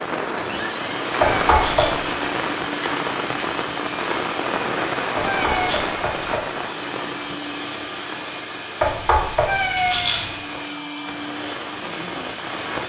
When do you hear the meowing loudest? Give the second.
10 s.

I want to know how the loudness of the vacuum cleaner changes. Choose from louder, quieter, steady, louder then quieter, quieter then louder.
steady.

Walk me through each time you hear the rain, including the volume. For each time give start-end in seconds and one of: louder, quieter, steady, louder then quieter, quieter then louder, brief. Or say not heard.
0.0-12.8 quieter.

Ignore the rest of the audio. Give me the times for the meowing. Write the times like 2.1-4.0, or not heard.
1.4-2.1, 5.2-5.9, 9.4-10.4.